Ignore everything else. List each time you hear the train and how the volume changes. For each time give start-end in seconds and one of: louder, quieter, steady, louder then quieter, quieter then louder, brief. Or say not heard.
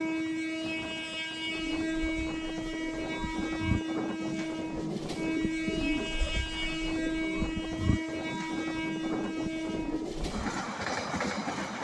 0.0-11.7 steady.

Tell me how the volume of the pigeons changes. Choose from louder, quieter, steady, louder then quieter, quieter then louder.
louder then quieter.